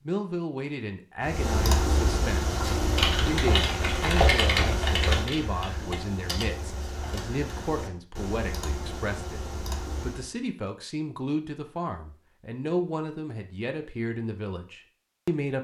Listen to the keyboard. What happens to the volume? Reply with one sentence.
The volume of the keyboard goes down.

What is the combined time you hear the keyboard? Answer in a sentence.
The keyboard can be heard for 9 seconds in total.